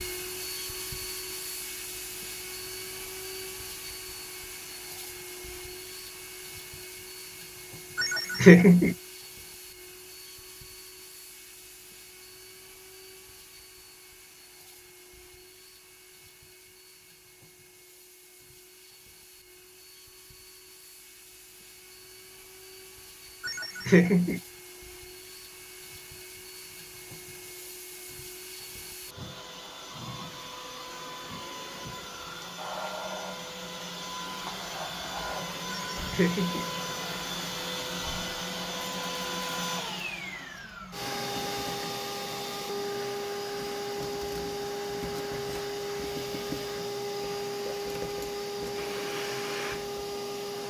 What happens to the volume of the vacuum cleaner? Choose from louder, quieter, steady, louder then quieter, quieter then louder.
quieter then louder.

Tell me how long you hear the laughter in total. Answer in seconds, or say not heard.
3 s.